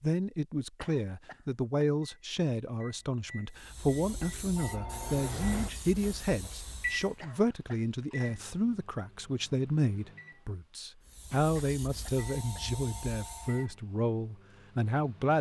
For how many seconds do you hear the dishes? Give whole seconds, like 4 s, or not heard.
not heard.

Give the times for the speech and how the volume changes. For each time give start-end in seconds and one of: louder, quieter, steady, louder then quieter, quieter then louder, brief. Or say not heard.
0.0-15.3 steady.